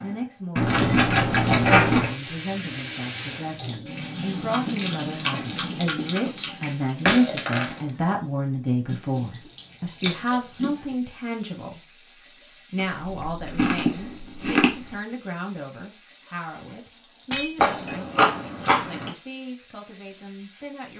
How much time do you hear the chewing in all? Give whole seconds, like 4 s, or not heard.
9 s.